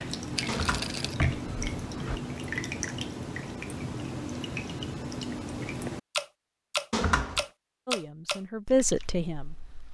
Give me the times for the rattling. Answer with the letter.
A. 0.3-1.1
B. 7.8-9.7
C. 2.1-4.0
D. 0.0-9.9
A.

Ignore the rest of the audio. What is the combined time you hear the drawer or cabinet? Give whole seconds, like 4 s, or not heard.
2 s.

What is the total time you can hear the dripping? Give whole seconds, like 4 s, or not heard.
10 s.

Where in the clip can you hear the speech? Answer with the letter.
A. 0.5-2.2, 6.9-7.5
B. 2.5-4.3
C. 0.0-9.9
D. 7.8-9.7
D.